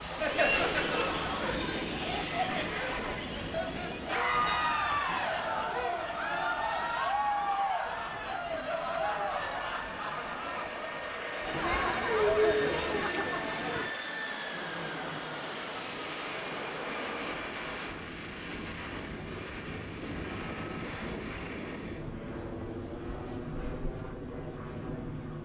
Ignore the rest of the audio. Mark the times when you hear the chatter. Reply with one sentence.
The chatter can be heard from 0.0 to 13.9 s.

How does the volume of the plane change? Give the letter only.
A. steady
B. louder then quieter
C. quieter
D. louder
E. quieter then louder
E.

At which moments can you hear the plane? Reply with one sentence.
You can hear the plane from 0.0 to 25.3 s.